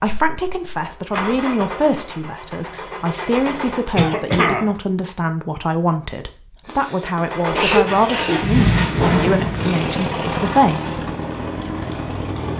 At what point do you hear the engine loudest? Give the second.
9 s.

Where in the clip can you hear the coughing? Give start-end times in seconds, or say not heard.
4.0-4.7, 6.7-8.4.